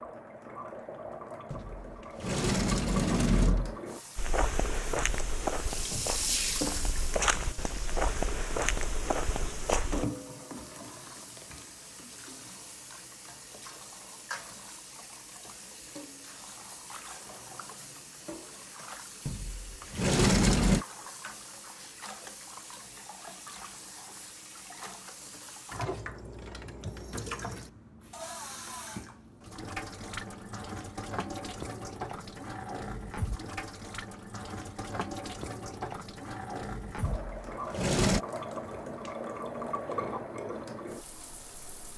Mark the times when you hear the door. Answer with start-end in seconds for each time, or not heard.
1.5-3.8, 19.2-20.9, 37.0-38.2.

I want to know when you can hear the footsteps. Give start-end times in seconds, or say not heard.
4.2-10.1.